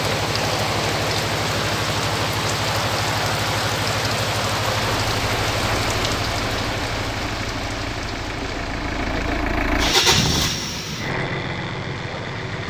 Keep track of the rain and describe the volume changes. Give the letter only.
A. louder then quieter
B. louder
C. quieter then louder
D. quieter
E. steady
D.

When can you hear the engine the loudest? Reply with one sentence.
The volume of the engine peaks at 10 seconds.